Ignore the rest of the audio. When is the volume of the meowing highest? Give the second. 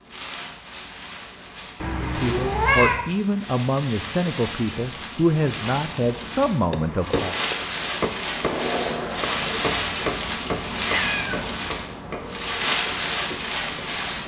3 s.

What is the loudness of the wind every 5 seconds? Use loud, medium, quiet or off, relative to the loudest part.
medium, loud, loud.